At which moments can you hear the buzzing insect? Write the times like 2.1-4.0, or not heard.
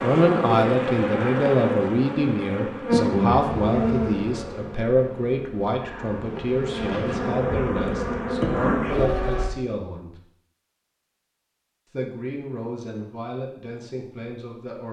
0.0-9.5.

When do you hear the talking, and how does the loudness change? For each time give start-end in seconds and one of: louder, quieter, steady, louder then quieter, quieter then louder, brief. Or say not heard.
0.0-10.2 quieter
11.9-14.8 brief.